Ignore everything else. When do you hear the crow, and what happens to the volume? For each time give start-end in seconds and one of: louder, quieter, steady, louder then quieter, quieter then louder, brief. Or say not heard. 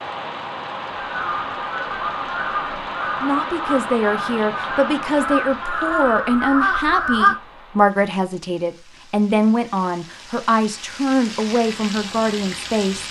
1.0-7.3 louder.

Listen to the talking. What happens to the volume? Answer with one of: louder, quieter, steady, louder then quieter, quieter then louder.
steady.